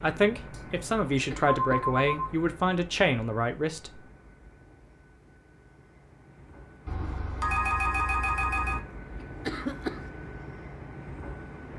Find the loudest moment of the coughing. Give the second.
10 s.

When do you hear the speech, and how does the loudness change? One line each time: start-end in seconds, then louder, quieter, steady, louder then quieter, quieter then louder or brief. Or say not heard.
0.0-4.0 steady.